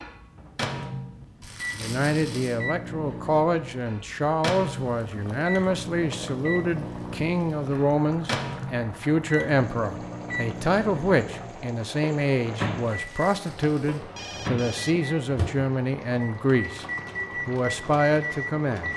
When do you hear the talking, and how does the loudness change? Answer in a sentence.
You can hear the talking from 1.8 to 16.9 s, at a steady volume; and briefly from 17.4 to 18.9 s.